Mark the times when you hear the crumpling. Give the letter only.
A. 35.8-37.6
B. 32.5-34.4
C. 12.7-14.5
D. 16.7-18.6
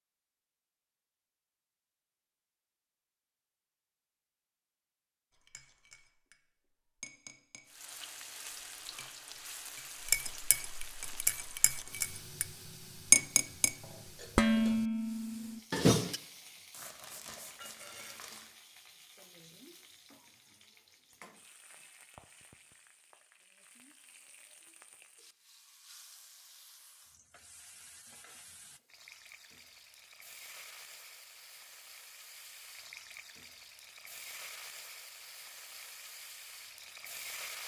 D.